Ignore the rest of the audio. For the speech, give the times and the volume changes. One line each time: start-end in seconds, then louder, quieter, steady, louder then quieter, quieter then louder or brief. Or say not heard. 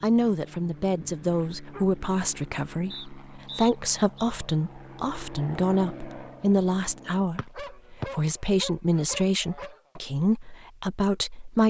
0.0-11.6 steady.